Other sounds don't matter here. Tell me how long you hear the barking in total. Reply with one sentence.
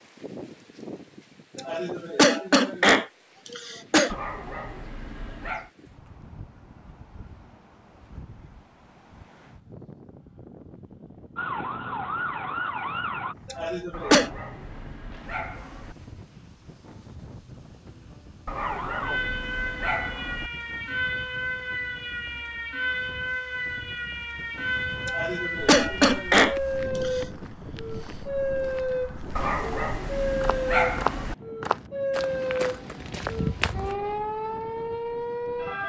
The barking can be heard for 8 seconds in total.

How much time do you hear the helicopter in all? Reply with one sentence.
You can't hear the helicopter here.